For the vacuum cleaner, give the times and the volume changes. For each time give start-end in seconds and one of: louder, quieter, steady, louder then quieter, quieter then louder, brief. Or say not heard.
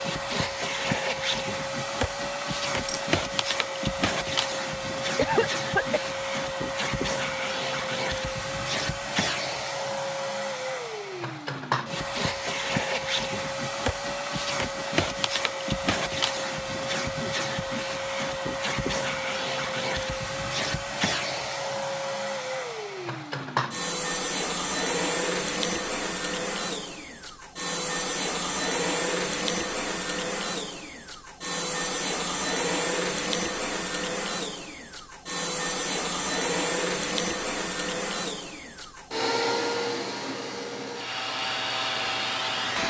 0.0-42.8 steady.